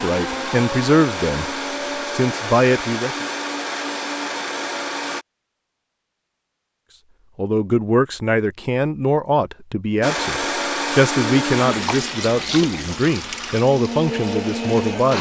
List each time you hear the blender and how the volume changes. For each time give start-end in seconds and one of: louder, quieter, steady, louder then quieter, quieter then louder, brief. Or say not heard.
0.0-5.2 steady
10.0-15.1 quieter then louder.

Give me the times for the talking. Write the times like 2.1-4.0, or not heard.
0.0-1.4, 2.1-3.2, 7.3-15.1.